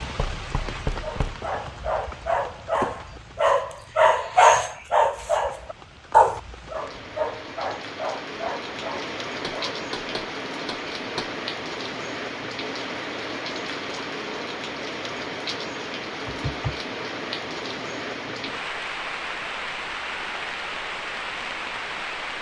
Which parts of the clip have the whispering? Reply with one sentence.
You can't hear the whispering here.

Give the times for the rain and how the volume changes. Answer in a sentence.
The rain can be heard from 0.0 to 22.3 s, getting louder.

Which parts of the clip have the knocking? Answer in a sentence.
You can hear the knocking from 0.1 to 1.5 s, from 9.4 to 11.3 s and from 16.2 to 16.8 s.